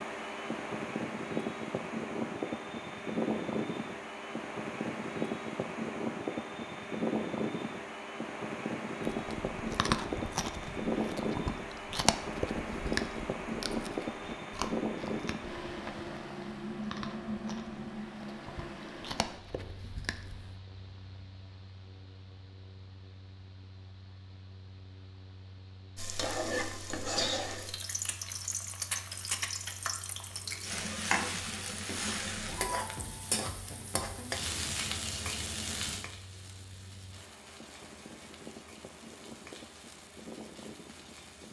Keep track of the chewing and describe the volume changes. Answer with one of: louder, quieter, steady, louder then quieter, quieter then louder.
quieter.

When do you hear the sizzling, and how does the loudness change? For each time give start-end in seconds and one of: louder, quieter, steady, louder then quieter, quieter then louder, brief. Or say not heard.
25.9-41.4 quieter.